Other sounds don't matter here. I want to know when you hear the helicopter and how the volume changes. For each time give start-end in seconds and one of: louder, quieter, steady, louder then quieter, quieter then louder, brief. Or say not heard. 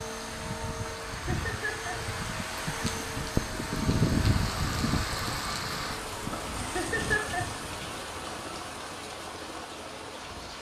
0.0-10.5 louder then quieter.